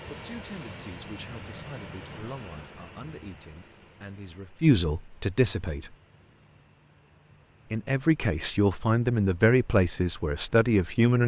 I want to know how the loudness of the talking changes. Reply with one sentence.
The loudness of the talking goes up.